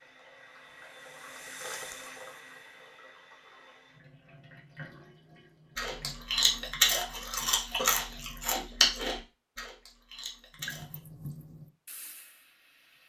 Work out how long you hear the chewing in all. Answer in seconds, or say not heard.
5 s.